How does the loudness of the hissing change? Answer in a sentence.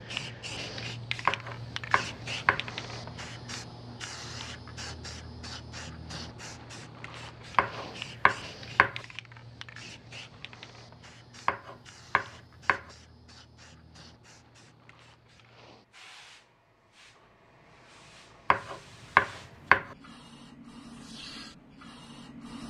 The volume of the hissing goes down, then up.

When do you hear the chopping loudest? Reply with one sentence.
The loudest moment of the chopping is at 19 seconds.